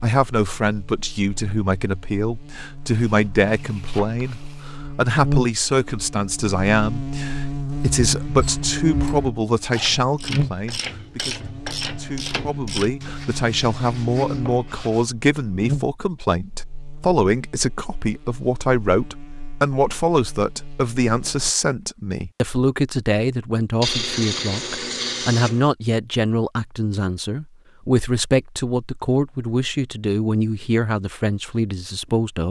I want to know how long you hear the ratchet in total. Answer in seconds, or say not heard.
5 s.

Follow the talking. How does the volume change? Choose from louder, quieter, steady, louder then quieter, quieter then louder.
steady.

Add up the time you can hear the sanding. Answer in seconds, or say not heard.
6 s.